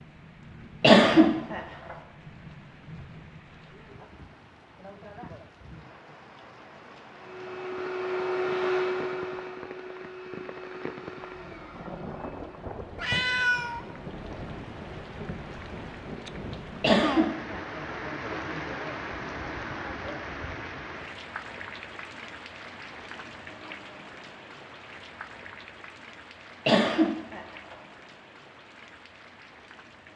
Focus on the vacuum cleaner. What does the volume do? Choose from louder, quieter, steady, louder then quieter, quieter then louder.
quieter.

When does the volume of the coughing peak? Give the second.
1 s.